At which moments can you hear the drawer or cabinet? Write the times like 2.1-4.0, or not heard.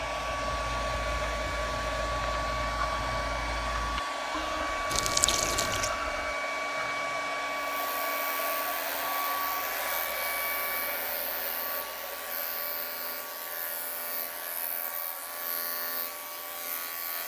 not heard.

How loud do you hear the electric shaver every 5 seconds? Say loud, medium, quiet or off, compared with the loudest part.
off, loud, loud, loud.